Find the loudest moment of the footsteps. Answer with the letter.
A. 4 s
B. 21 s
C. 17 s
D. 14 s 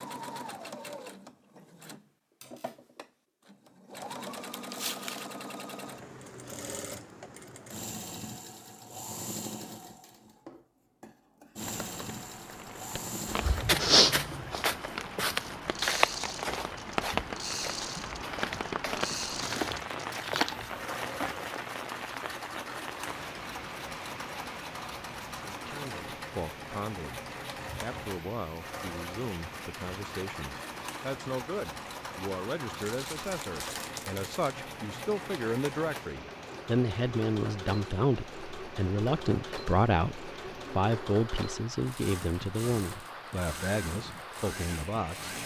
D.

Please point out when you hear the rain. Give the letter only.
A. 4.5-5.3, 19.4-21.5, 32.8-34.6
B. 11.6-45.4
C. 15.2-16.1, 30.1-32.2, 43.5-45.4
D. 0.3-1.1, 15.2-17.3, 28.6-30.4
B.